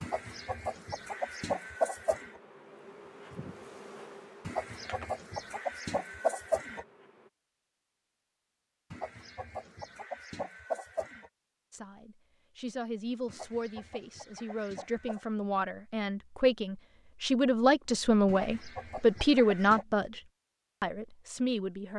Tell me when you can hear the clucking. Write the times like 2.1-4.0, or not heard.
0.0-2.3, 4.5-6.8, 8.9-11.3, 13.2-15.2, 18.2-19.9.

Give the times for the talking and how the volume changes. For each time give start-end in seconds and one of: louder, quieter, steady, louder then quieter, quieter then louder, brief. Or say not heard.
11.7-20.2 louder
20.8-21.9 brief.